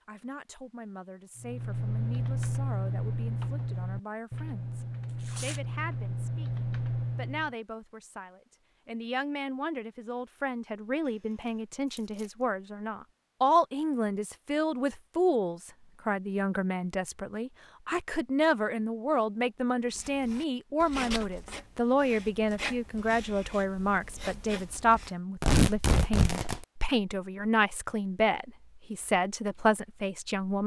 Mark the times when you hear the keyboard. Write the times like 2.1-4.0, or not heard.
1.4-7.5.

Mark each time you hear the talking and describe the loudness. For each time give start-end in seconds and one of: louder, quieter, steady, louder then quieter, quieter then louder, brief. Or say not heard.
0.1-30.6 louder.